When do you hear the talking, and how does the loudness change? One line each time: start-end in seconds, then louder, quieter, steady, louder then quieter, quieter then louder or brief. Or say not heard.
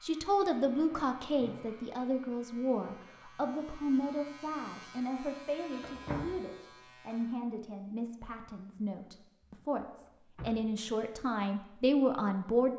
0.0-12.7 quieter then louder.